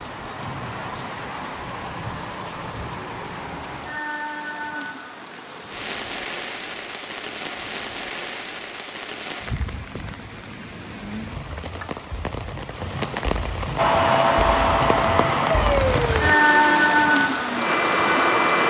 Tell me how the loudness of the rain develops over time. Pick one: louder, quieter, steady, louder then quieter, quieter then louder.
louder.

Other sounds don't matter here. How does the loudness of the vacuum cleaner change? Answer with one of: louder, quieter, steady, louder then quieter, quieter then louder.
quieter then louder.